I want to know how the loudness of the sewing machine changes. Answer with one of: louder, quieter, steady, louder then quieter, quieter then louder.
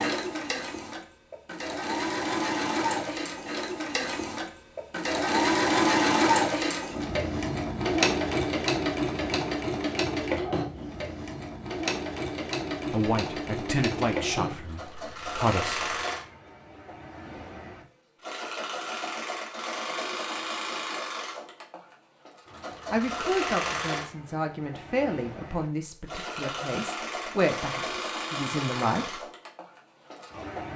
quieter.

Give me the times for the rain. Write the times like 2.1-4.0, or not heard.
not heard.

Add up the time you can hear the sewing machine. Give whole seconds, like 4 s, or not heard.
31 s.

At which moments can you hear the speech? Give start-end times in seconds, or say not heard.
12.9-15.9, 22.9-29.2.